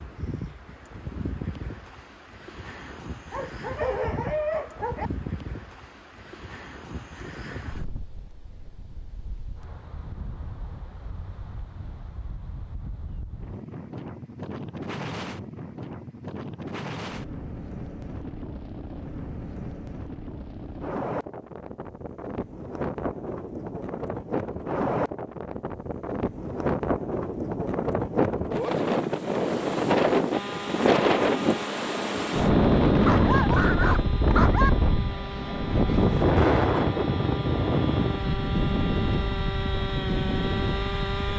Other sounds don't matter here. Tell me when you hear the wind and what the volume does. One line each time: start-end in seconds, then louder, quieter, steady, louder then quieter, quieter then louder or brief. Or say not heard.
0.0-41.3 louder.